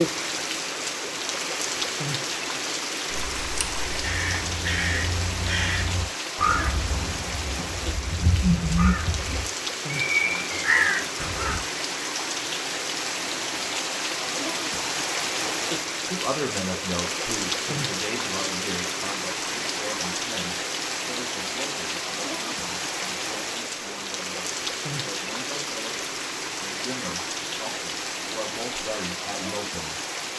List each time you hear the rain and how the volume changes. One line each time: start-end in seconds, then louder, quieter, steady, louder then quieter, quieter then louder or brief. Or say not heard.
0.0-30.3 steady.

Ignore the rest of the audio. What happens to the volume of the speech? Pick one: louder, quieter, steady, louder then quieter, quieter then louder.
quieter then louder.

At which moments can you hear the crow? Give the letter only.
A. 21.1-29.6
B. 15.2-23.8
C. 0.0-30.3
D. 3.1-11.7
D.